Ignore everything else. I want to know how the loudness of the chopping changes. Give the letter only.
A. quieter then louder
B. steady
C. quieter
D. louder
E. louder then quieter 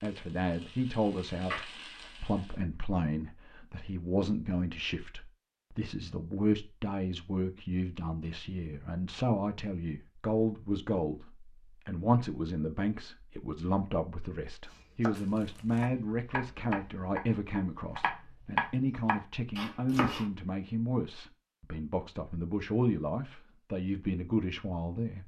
E.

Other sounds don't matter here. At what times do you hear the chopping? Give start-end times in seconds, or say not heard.
14.7-20.2.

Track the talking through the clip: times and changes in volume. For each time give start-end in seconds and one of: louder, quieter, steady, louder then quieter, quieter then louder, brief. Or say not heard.
0.0-25.2 steady.